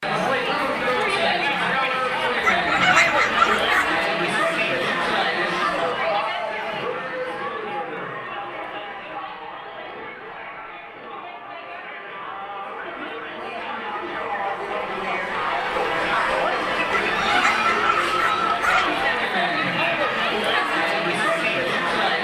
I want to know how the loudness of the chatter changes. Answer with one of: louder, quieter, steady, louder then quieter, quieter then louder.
quieter then louder.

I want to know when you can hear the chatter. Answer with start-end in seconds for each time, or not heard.
0.0-22.1.